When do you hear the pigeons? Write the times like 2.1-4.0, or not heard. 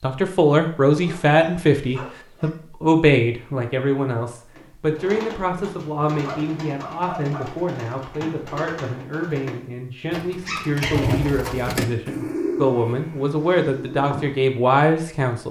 4.5-14.4.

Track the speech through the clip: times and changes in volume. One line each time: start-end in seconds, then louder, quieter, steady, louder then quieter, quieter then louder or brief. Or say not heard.
0.0-15.4 quieter then louder.